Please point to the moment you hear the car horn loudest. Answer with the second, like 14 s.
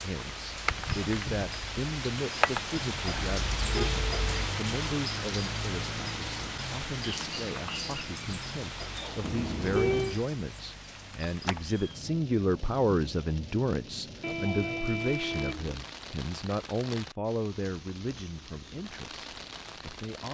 10 s.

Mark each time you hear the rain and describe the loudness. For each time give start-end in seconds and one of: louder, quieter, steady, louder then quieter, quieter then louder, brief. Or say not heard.
0.0-20.2 quieter.